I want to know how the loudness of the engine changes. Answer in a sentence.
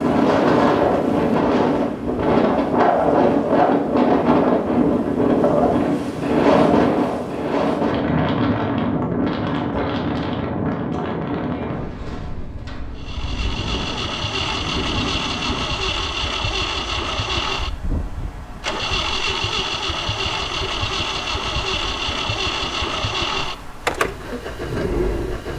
The volume of the engine stays about the same.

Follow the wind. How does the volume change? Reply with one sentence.
The volume of the wind goes down.